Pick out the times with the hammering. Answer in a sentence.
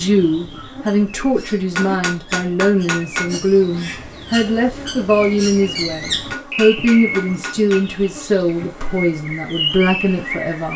You can hear the hammering from 1.4 to 3.3 s and from 6.1 to 7.8 s.